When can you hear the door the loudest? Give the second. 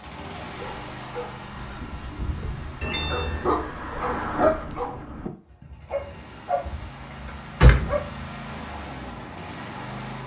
8 s.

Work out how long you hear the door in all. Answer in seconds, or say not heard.
2 s.